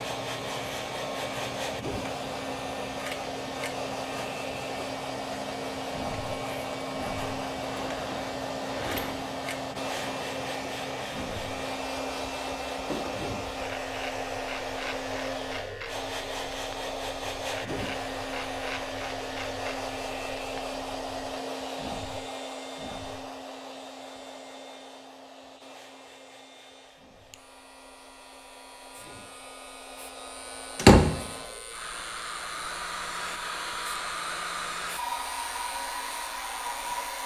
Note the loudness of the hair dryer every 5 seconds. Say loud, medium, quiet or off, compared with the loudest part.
loud, loud, loud, loud, loud, quiet, loud, loud.